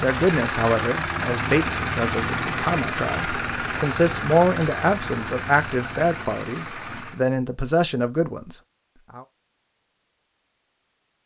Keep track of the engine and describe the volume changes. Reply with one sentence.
The volume of the engine goes down.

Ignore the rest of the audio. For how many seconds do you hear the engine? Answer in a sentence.
The engine can be heard for 7 seconds in total.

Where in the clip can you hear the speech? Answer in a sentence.
The speech can be heard from 0.0 to 9.2 s.